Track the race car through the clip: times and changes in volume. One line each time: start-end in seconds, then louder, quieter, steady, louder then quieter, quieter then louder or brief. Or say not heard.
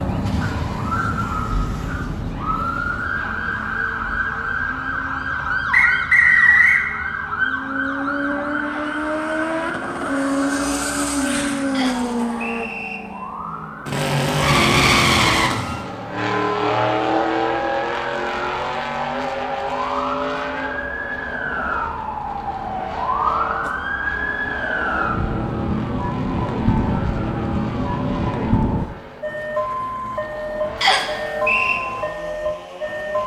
0.0-33.2 louder then quieter.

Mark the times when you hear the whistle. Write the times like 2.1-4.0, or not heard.
5.7-6.8, 11.7-13.0, 30.8-31.8.